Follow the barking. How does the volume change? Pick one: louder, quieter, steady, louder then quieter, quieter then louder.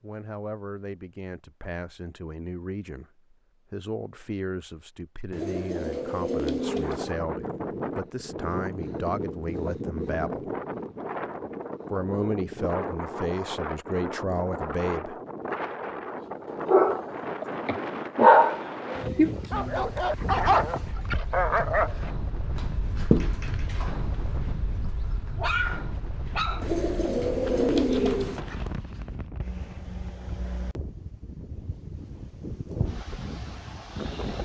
quieter.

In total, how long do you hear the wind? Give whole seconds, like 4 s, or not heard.
28 s.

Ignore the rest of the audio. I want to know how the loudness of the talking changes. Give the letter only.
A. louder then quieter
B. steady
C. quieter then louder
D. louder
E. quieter
D.